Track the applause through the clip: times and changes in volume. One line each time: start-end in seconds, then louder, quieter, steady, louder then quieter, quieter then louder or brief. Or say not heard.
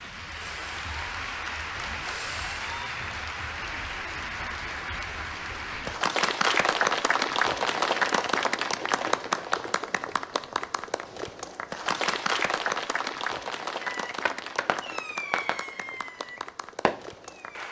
0.0-17.6 louder then quieter.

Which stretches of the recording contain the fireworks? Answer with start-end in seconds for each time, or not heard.
0.0-2.9, 13.8-17.6.